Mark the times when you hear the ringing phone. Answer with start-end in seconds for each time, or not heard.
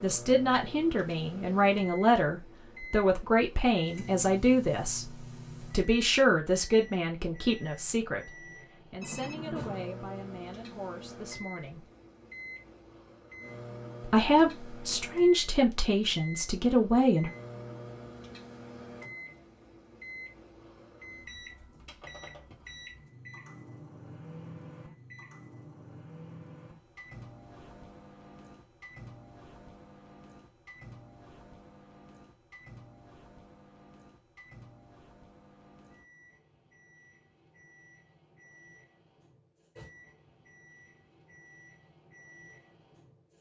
9.0-9.9.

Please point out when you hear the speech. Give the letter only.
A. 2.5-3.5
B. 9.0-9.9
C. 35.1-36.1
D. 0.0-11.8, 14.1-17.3
D.